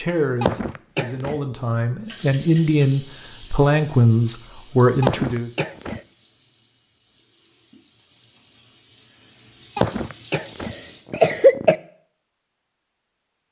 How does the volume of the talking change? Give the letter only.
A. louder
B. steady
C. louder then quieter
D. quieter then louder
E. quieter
A.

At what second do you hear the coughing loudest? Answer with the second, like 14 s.
11 s.